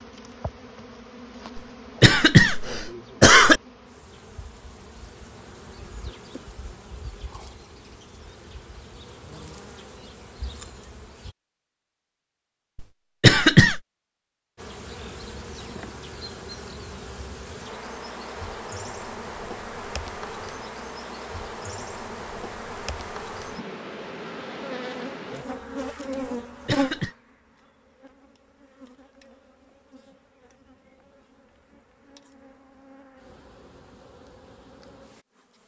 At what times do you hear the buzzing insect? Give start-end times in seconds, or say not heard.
0.0-11.3, 14.6-35.6.